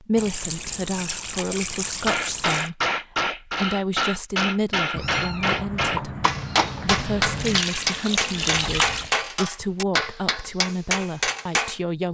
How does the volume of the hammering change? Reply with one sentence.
The loudness of the hammering stays about the same.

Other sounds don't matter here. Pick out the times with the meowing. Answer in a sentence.
You can hear the meowing from 5.0 to 7.6 s.